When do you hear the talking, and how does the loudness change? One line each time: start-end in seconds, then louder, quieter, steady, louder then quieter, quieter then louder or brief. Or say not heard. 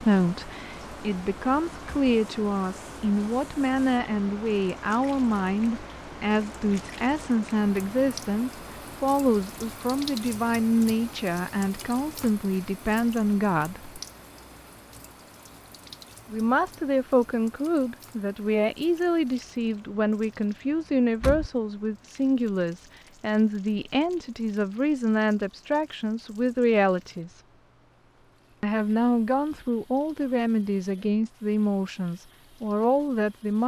0.0-14.0 steady
16.3-27.3 steady
28.6-33.6 steady.